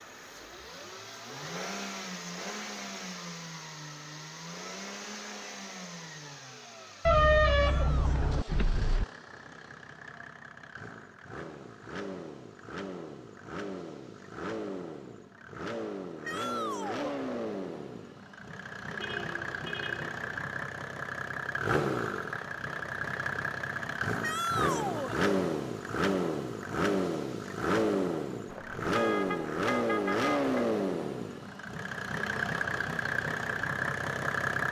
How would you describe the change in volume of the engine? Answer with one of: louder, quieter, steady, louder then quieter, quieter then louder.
louder.